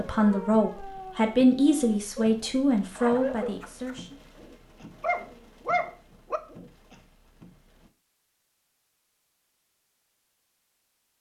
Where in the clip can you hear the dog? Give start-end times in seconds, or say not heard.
0.1-7.0.